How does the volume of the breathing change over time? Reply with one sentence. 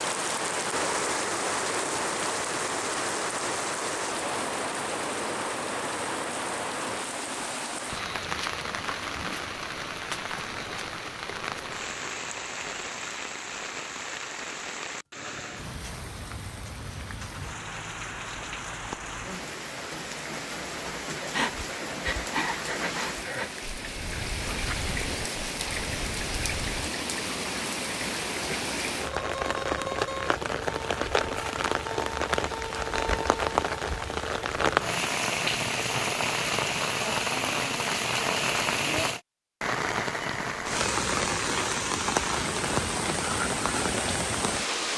The loudness of the breathing goes down.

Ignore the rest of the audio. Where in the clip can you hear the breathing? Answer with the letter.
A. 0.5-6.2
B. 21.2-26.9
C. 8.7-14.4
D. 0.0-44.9
B.